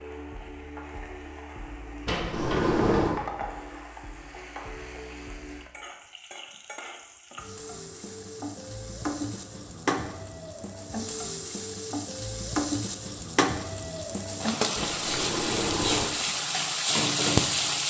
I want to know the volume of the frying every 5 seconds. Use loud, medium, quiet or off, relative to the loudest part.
quiet, medium, medium, loud.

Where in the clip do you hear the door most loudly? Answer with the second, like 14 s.
3 s.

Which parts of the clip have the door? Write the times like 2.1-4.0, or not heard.
2.0-3.2, 14.8-16.1.